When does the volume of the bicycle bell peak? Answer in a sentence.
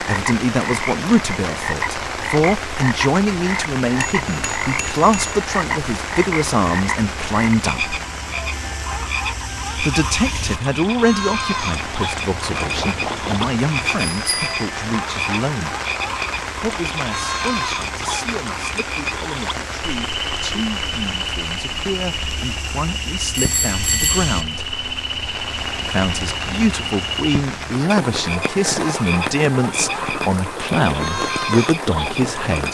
The loudest moment of the bicycle bell is at 24 seconds.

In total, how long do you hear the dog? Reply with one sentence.
You can't hear the dog here.